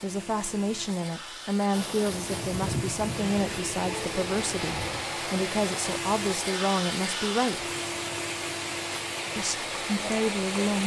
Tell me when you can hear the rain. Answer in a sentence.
You can hear the rain from 1.7 to 10.8 s.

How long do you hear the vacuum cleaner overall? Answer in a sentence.
The vacuum cleaner can be heard for 11 seconds in total.